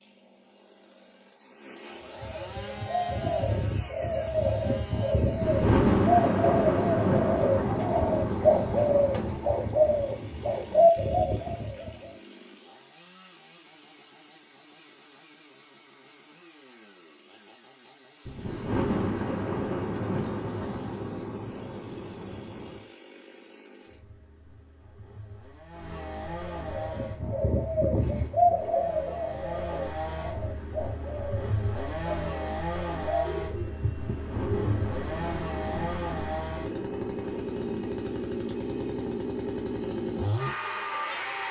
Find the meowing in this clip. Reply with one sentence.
The meowing can't be heard in this clip.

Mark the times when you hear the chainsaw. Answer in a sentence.
You can hear the chainsaw from 0.0 to 41.4 s.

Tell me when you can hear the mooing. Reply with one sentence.
You can't hear the mooing here.